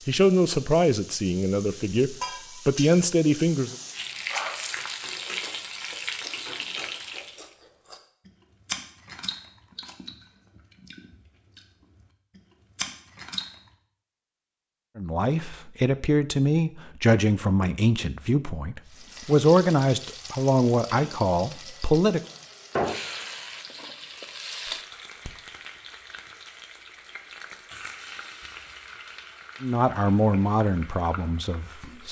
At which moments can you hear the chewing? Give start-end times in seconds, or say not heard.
4.3-13.7.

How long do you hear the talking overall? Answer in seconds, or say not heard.
13 s.